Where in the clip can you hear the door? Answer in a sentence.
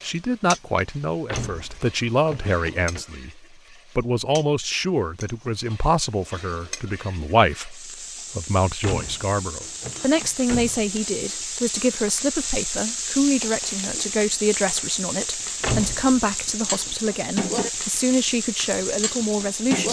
The door can be heard from 1.2 to 3.0 s, from 8.8 to 10.9 s and from 15.6 to 16.2 s.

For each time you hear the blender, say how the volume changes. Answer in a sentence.
You can't hear the blender here.